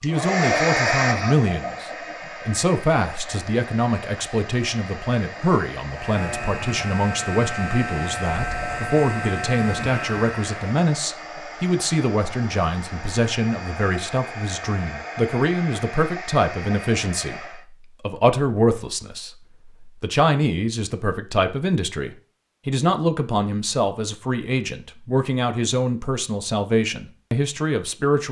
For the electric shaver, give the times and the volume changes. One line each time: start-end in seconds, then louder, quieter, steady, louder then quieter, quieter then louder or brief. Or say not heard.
5.9-10.7 steady.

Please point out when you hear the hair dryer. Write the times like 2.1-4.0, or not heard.
0.0-17.6.